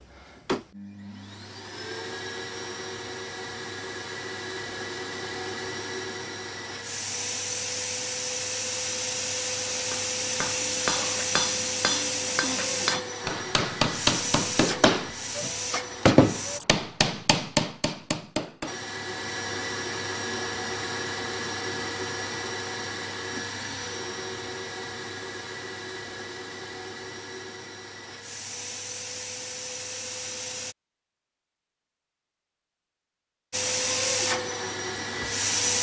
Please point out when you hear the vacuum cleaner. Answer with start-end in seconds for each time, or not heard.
0.0-16.6, 18.6-30.8, 33.5-35.7.